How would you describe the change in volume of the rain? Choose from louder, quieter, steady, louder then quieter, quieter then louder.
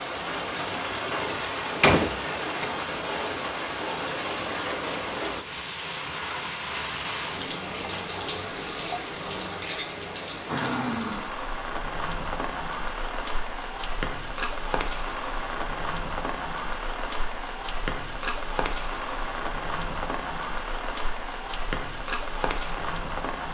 steady.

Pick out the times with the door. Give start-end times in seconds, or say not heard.
1.2-2.7.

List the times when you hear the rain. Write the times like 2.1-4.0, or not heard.
0.0-23.4.